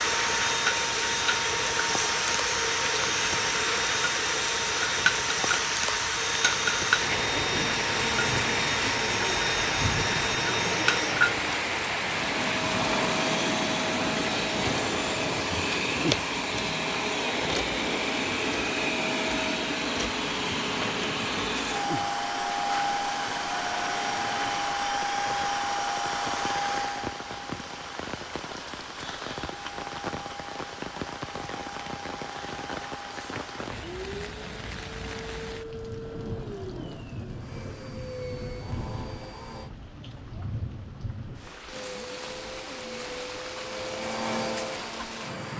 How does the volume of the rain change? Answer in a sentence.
The loudness of the rain goes down.